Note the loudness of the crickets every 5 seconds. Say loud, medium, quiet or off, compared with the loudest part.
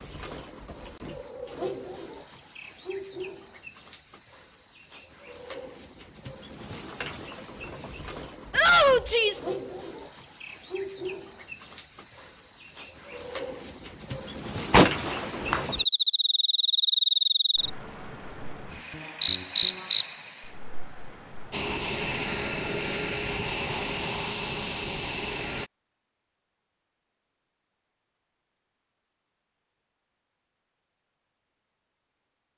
medium, medium, loud, loud, quiet, off, off.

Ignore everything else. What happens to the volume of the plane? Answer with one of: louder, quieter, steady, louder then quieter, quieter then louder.
steady.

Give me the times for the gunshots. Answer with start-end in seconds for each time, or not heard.
14.7-15.7.